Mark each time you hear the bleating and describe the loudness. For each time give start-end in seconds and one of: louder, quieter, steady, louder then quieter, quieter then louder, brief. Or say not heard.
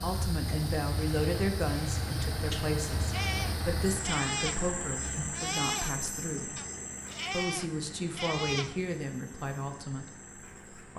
3.1-8.9 quieter then louder.